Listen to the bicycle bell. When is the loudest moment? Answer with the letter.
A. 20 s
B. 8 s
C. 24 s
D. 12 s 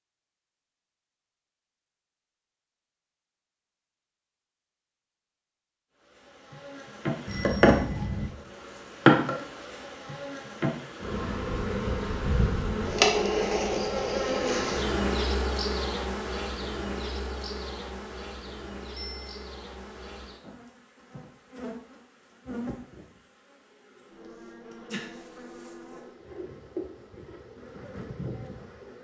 B.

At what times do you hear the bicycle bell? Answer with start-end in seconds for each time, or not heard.
7.2-8.3, 18.9-19.4.